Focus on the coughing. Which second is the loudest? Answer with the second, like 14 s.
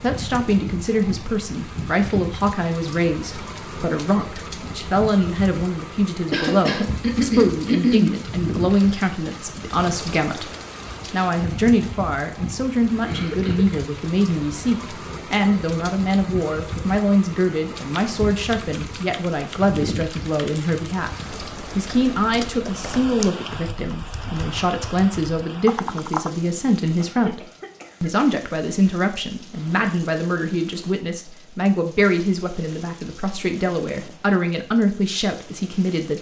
8 s.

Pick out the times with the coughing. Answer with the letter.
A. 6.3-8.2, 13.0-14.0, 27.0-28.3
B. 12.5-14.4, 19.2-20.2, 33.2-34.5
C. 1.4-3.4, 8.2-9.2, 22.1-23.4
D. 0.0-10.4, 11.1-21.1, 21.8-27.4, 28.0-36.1
A.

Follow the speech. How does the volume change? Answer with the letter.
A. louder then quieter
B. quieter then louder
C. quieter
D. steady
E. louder
D.